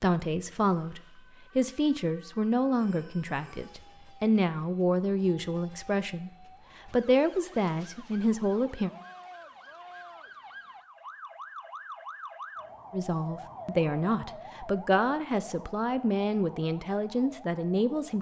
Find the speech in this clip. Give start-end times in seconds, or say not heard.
0.0-8.9, 12.9-18.1.